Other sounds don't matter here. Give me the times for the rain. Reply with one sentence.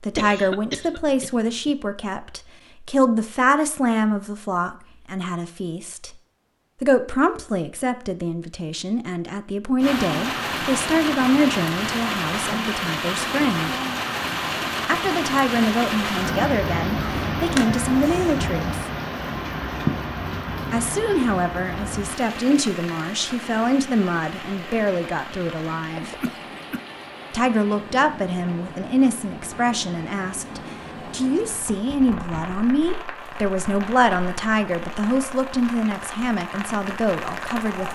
You can hear the rain from 9.8 to 37.9 s.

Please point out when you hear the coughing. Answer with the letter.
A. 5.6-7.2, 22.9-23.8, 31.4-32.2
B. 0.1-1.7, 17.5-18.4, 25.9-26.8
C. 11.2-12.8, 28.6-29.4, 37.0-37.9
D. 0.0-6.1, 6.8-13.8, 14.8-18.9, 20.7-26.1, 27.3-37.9
B.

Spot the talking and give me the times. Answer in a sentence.
The talking can be heard from 0.0 to 6.1 s, from 6.8 to 13.8 s, from 14.8 to 18.9 s, from 20.7 to 26.1 s and from 27.3 to 37.9 s.